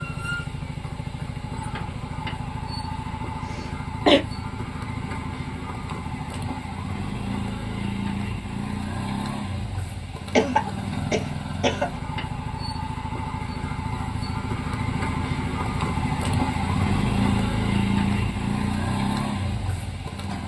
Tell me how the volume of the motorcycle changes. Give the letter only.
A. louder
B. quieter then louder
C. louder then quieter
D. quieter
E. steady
A.